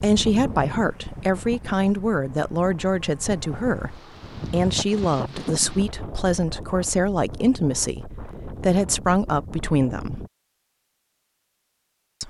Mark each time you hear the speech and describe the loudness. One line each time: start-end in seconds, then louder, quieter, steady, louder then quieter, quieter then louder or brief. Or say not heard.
0.0-10.2 steady.